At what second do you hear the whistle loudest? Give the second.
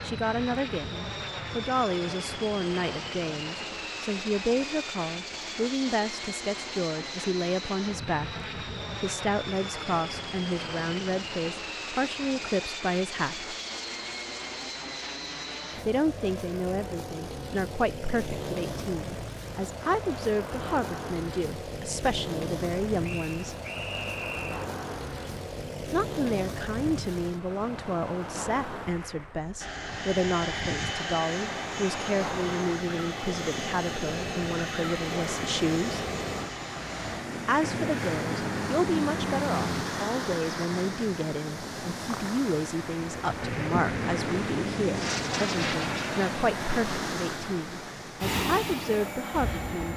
24 s.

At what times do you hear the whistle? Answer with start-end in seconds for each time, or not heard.
23.0-24.6.